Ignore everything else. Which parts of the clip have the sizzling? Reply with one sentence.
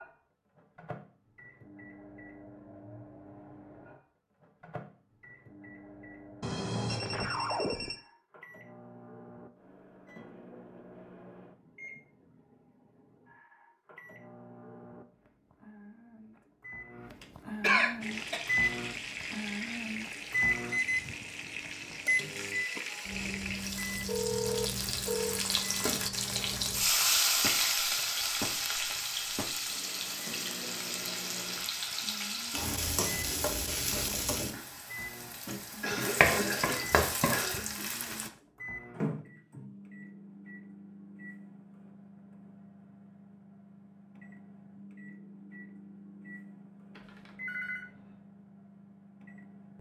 You can hear the sizzling from 18.0 to 38.3 s.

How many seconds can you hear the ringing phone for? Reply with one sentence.
The ringing phone can be heard for 4 seconds in total.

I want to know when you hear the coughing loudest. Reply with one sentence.
The volume of the coughing peaks at 18 seconds.